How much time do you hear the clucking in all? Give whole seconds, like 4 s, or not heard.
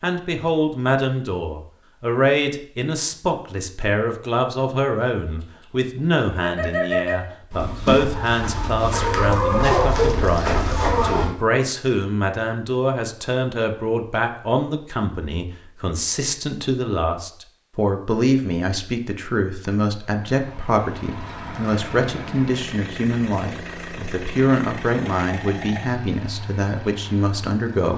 6 s.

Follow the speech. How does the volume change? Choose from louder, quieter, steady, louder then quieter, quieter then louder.
steady.